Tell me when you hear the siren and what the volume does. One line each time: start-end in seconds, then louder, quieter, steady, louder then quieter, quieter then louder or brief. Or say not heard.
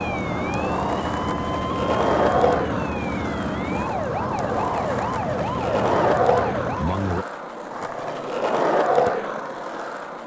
0.0-7.2 steady.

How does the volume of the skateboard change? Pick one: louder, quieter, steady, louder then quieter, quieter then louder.
steady.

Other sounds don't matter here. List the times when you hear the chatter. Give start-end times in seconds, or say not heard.
not heard.